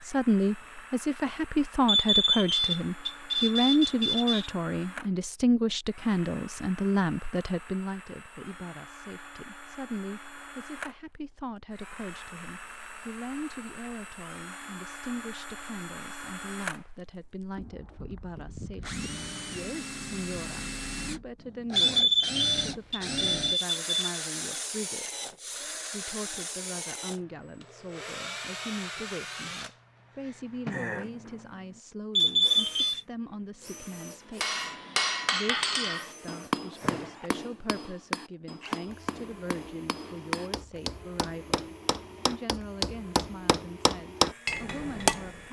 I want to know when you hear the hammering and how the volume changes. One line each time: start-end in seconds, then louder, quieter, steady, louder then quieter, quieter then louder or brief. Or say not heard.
34.4-45.4 quieter then louder.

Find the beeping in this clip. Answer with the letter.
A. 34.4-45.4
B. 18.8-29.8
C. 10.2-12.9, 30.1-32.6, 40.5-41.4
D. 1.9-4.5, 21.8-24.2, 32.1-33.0
D.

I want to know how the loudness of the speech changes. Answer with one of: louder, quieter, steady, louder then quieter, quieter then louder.
quieter.